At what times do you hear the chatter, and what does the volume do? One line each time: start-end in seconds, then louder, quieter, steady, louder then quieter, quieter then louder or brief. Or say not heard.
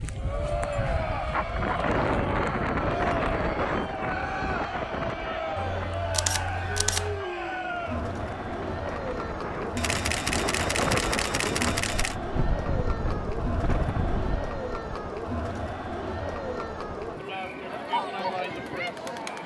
0.1-19.4 steady.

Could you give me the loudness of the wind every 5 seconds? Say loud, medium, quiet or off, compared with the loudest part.
loud, medium, loud, off.